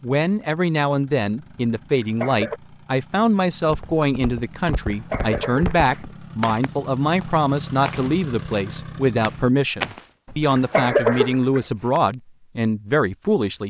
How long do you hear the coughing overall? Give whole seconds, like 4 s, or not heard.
3 s.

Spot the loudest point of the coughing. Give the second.
11 s.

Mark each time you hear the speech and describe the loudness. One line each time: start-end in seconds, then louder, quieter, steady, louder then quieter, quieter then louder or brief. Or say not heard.
0.0-13.6 steady.